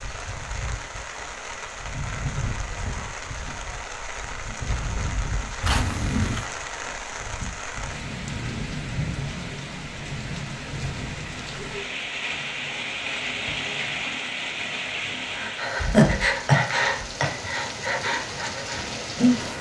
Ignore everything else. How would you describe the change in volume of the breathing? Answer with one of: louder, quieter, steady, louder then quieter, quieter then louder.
quieter.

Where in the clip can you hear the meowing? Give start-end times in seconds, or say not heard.
5.6-6.5.